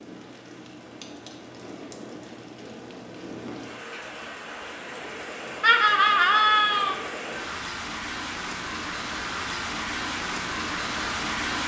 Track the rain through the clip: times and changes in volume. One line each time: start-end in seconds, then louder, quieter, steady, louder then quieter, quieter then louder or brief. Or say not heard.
0.0-11.6 louder.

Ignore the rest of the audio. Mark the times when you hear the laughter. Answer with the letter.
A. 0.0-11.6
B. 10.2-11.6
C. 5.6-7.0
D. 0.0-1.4
C.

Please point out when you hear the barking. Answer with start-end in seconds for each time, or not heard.
not heard.